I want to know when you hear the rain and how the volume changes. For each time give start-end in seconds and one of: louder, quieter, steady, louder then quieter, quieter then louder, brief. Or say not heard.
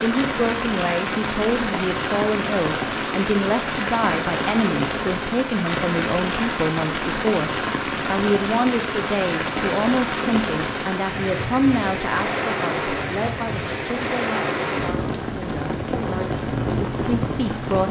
0.0-17.8 steady.